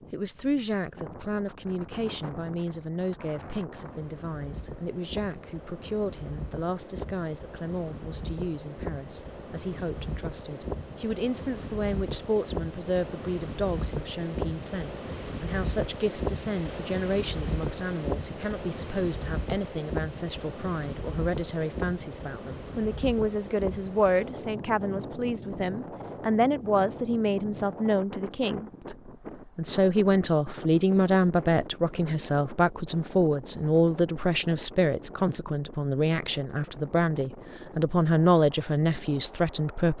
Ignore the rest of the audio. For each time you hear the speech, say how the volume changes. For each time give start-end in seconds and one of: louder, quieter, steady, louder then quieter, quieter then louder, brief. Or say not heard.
0.0-39.9 louder.